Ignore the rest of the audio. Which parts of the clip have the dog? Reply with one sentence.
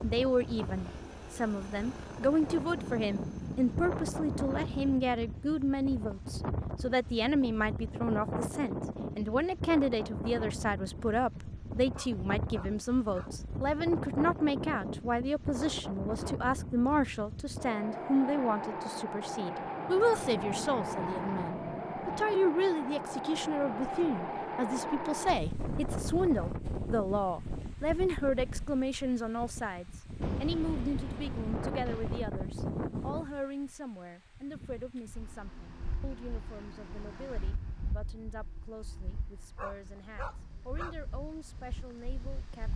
You can hear the dog from 11.9 to 13.3 s and from 39.5 to 41.0 s.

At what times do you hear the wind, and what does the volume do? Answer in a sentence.
The wind can be heard from 0.0 to 42.7 s, getting quieter.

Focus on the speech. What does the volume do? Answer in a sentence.
The loudness of the speech goes down.